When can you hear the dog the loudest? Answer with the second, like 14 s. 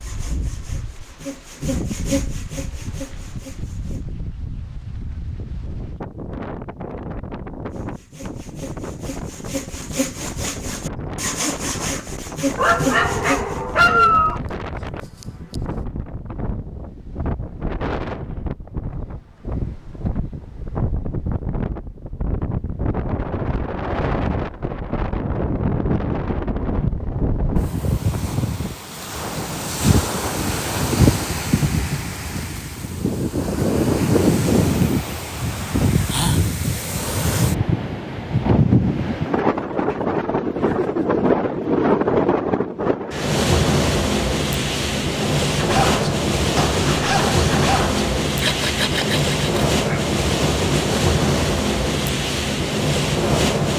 14 s.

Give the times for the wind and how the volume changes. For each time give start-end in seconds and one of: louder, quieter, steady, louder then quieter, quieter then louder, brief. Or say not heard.
0.0-53.7 louder.